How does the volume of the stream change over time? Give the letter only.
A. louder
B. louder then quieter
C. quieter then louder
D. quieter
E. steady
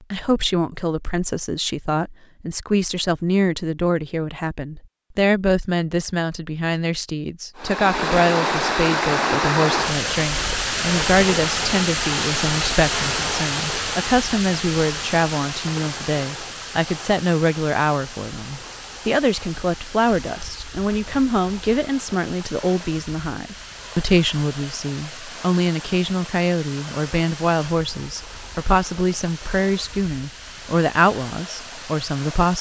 D.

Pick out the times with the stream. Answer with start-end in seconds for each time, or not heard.
7.5-32.5.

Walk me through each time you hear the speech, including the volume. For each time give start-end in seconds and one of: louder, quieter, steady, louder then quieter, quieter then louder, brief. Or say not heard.
0.1-32.5 steady.